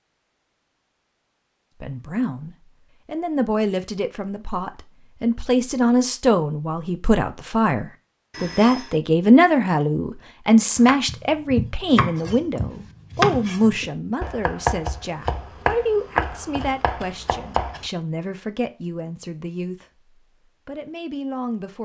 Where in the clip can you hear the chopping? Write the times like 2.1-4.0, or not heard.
10.8-17.9.